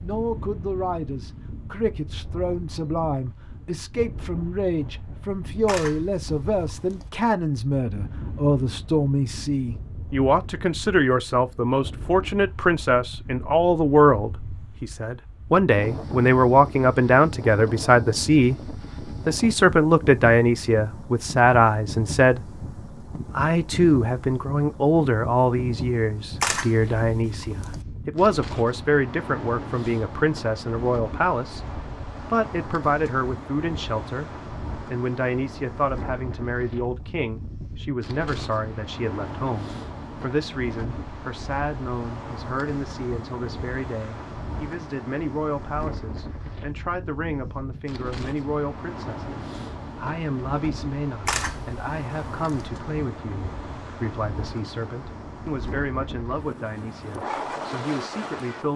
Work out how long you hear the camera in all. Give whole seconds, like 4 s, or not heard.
4 s.